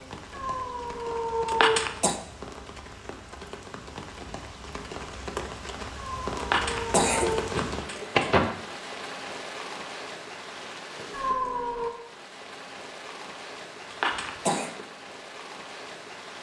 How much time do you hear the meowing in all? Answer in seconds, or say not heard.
4 s.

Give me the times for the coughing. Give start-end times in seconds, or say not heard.
1.4-2.1, 6.3-8.4, 13.9-14.7.